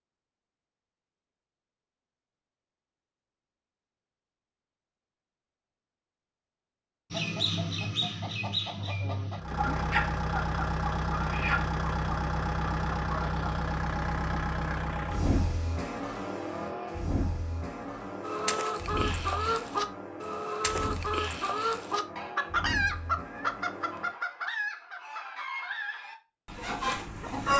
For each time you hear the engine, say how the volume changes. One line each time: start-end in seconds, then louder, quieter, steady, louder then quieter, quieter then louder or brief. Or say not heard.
9.3-24.2 quieter.